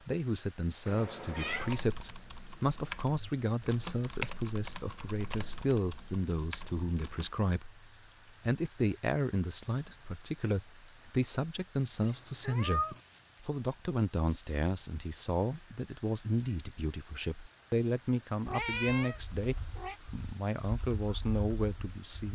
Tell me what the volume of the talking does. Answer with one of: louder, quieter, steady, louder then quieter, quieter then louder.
steady.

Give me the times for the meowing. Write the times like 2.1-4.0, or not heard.
0.8-1.8, 12.0-13.0, 18.4-19.9.